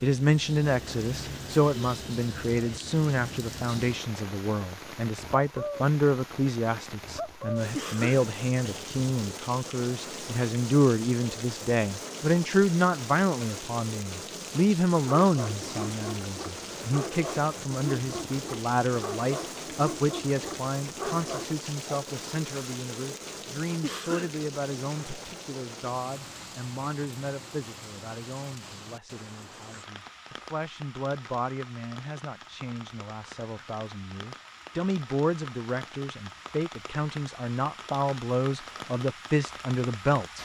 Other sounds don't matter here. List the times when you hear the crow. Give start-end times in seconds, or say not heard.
not heard.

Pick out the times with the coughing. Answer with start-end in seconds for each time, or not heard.
7.7-8.8, 23.8-24.4.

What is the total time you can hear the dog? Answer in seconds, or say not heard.
7 s.